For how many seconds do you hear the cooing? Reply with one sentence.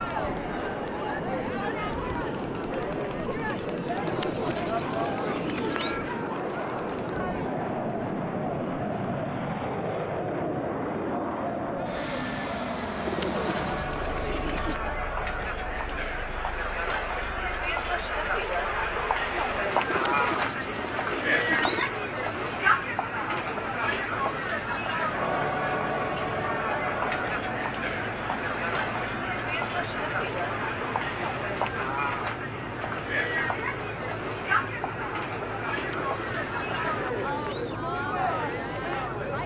You can hear the cooing for 8 seconds altogether.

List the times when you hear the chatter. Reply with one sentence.
The chatter can be heard from 0.0 to 39.4 s.